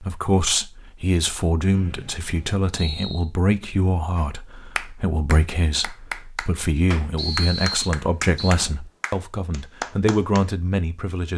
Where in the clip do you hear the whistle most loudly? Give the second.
8 s.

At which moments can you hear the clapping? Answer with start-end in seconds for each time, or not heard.
4.2-10.4.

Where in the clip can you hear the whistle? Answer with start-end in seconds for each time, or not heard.
1.7-3.2, 7.2-8.6.